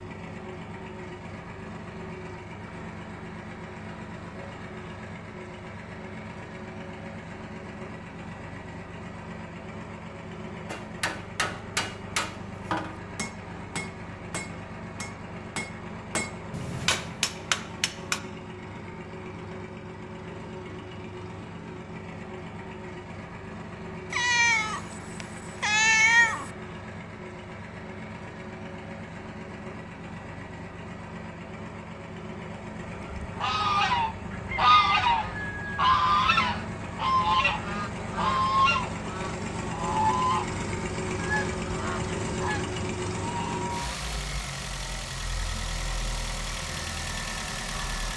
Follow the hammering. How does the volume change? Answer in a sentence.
The loudness of the hammering goes down, then up.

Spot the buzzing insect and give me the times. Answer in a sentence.
The buzzing insect can't be heard in this clip.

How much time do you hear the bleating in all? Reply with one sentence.
The bleating can't be heard in this clip.